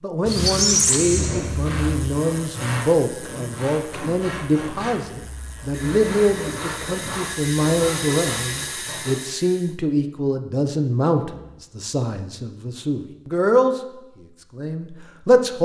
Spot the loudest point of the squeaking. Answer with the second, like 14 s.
1 s.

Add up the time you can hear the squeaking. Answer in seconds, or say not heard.
2 s.